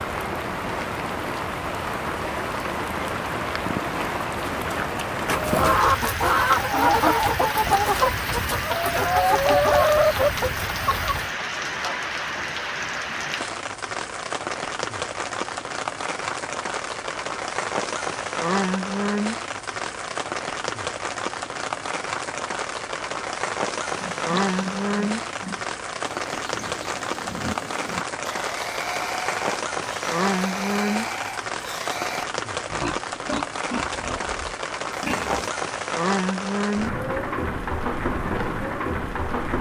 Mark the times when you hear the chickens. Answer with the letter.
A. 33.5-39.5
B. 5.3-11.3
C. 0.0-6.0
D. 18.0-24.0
B.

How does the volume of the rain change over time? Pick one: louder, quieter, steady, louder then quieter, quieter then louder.
steady.